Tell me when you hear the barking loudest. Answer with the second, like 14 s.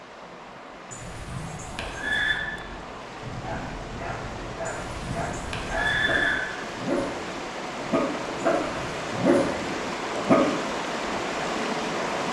9 s.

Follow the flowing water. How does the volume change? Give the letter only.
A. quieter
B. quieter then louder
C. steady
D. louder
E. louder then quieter
D.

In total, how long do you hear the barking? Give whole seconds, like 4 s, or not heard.
7 s.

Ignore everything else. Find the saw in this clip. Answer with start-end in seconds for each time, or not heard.
not heard.